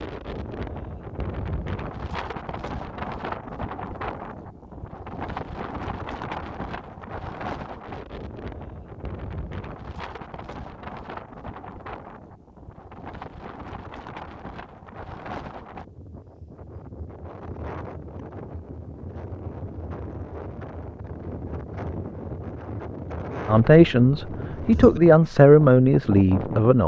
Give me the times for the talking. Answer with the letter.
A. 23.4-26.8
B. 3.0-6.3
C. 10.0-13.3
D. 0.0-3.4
A.